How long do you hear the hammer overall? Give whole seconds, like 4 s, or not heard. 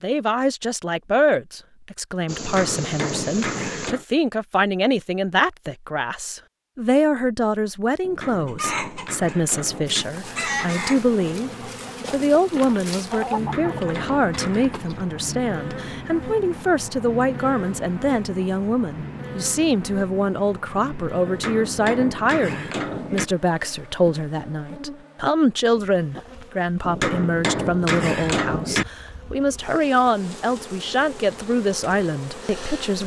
9 s.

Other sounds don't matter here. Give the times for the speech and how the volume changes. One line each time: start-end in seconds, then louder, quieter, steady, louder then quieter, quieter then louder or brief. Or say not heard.
0.0-33.0 steady.